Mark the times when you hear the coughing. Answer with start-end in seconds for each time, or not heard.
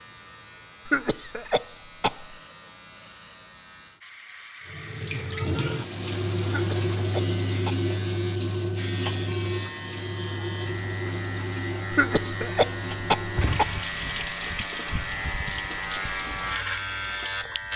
0.8-2.4, 6.5-7.8, 11.9-13.7.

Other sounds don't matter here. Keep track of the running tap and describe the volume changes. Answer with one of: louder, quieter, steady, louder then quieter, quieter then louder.
quieter.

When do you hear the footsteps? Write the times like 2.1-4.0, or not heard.
not heard.